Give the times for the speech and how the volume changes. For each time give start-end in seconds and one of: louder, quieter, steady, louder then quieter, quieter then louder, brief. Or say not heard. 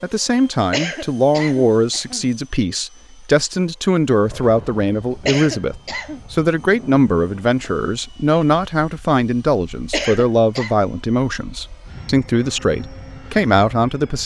0.0-14.2 steady.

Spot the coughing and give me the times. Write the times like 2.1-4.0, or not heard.
0.7-2.3, 5.2-6.2, 9.9-10.8.